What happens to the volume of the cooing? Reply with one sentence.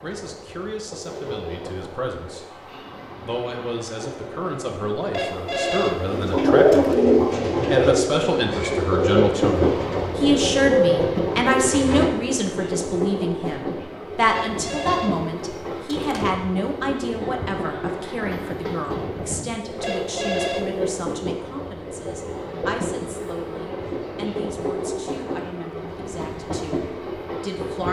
The volume of the cooing goes down, then up.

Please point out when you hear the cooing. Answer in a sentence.
You can hear the cooing from 6.0 to 12.1 s.